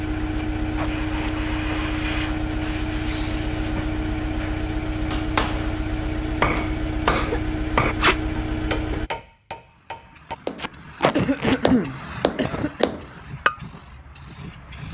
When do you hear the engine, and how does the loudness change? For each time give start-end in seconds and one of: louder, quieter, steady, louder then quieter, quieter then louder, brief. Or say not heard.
0.0-9.1 steady.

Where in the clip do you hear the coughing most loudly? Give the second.
12 s.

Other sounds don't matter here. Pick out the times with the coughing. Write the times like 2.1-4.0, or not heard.
3.0-3.5, 6.5-7.4, 11.1-12.9.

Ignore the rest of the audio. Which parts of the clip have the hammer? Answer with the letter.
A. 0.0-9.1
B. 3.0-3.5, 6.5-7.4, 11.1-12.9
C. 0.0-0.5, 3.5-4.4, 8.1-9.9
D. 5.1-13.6
D.